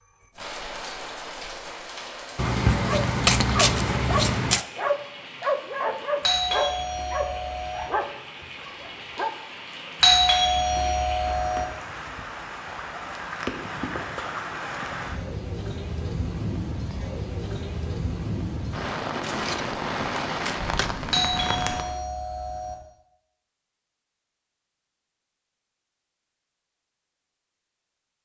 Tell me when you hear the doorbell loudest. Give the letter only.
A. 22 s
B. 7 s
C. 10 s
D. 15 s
C.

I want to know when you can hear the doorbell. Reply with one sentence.
The doorbell can be heard from 6.2 to 7.9 s, from 10.0 to 11.7 s and from 21.1 to 22.8 s.